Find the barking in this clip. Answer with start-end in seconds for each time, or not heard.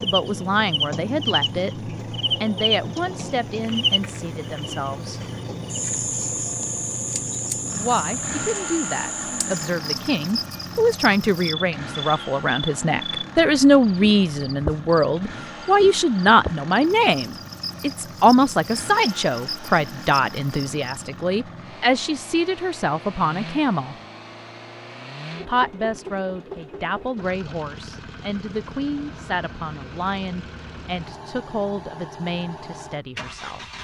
not heard.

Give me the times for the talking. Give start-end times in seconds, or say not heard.
0.0-1.8, 2.4-5.2, 7.7-23.9, 25.4-33.6.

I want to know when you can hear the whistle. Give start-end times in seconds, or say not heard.
not heard.